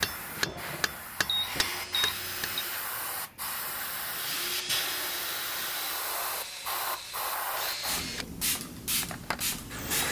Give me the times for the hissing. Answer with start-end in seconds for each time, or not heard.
0.0-10.0.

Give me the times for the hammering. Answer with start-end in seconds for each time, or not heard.
0.0-2.5.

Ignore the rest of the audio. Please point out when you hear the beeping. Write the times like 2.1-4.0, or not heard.
1.2-2.6.